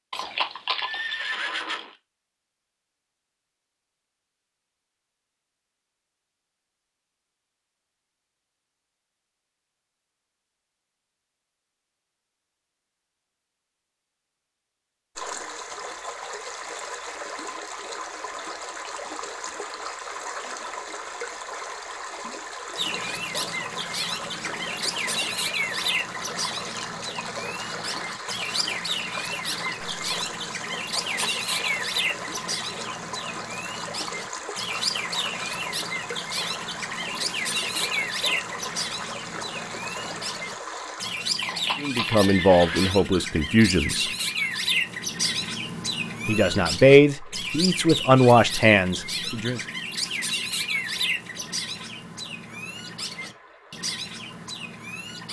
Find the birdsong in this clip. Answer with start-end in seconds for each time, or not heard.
22.8-55.2.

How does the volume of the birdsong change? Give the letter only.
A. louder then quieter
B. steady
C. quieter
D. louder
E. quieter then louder
B.